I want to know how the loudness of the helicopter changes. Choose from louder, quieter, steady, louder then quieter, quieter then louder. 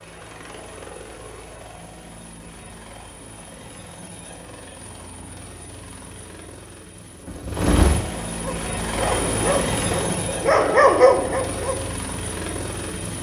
louder then quieter.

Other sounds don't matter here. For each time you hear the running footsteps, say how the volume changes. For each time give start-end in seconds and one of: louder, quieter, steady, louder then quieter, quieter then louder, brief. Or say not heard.
not heard.